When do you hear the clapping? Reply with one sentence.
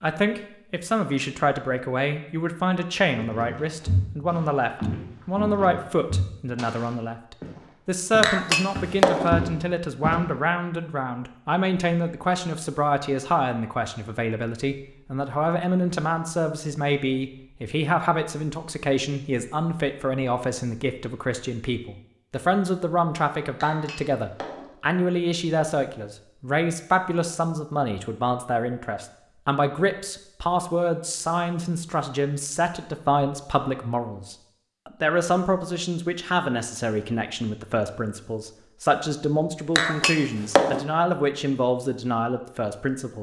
You can't hear the clapping here.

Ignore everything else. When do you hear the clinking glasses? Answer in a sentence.
You can hear the clinking glasses from 8.2 to 9.3 s, from 23.6 to 24.7 s and from 39.8 to 40.9 s.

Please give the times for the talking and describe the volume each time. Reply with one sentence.
The talking can be heard from 0.0 to 43.1 s, at a steady volume.